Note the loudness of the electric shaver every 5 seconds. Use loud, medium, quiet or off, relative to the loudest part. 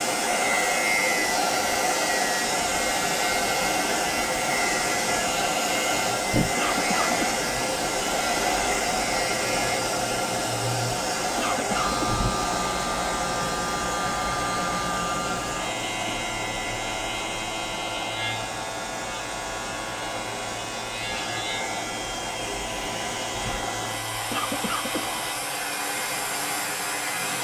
loud, loud, loud, loud, medium, medium.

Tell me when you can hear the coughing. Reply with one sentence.
You can hear the coughing from 6.5 to 7.3 s, from 11.3 to 12.2 s and from 24.3 to 25.2 s.